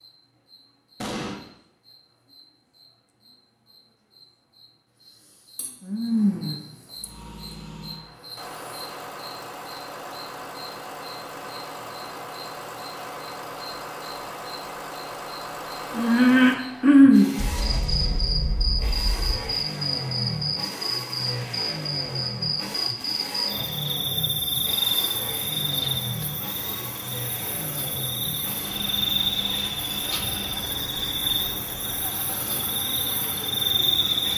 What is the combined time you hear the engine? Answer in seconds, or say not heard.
27 s.